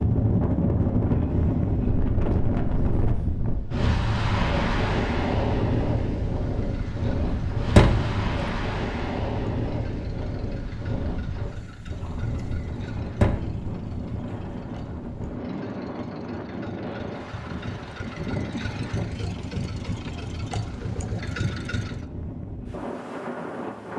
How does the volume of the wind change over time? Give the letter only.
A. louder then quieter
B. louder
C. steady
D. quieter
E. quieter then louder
D.